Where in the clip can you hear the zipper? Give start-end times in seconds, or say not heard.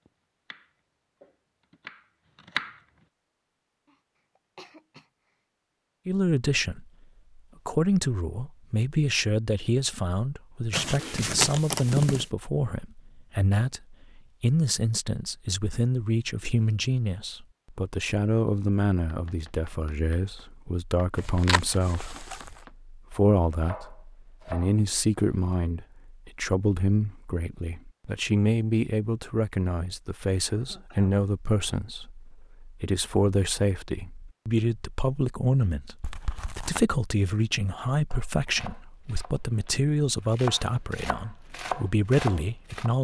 10.7-12.2, 21.1-22.6, 36.0-36.9.